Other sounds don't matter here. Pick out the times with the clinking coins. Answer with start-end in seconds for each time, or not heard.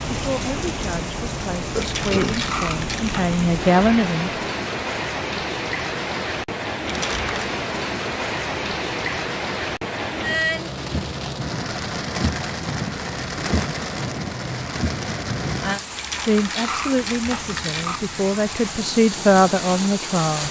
1.8-3.3, 6.8-7.3, 15.9-18.0.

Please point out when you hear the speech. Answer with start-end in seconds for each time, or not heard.
0.1-4.3, 16.2-20.4.